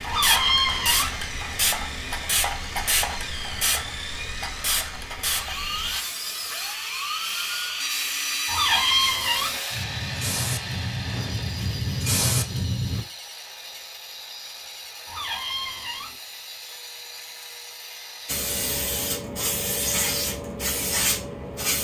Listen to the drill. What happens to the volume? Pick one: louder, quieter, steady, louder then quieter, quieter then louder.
louder then quieter.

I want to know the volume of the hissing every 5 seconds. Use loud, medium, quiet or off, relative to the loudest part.
loud, medium, loud, loud, loud.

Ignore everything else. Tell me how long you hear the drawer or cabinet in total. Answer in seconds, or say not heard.
3 s.